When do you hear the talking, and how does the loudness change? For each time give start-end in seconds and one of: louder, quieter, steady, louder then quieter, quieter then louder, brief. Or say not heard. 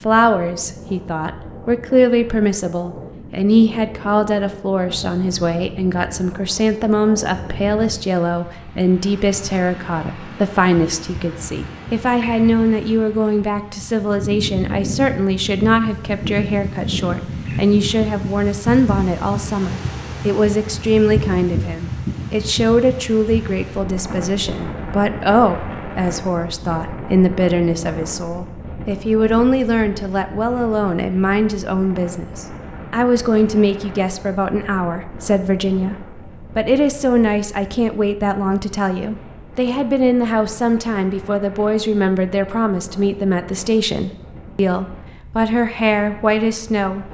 0.0-47.0 steady.